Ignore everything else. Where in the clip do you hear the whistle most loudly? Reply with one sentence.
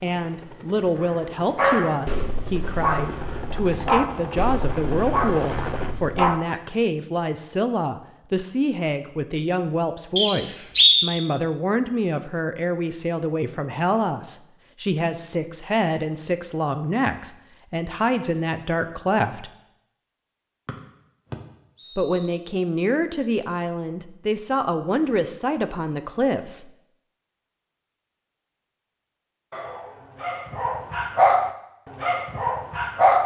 The loudest moment of the whistle is at 11 seconds.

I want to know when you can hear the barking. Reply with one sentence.
You can hear the barking from 1.0 to 6.6 s and from 29.5 to 33.2 s.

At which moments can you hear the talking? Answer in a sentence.
The talking can be heard from 0.0 to 19.5 s and from 21.9 to 26.7 s.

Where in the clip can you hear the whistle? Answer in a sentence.
The whistle can be heard from 10.2 to 11.1 s and from 20.6 to 22.2 s.